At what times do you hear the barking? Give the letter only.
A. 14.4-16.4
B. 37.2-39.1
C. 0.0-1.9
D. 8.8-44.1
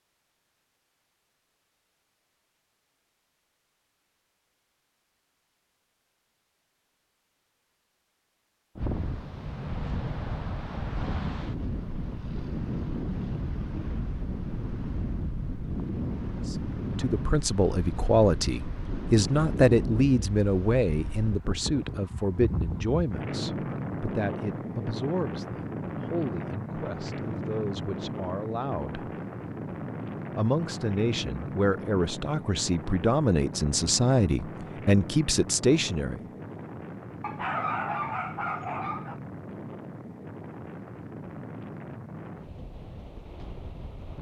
B.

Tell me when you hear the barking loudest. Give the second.
38 s.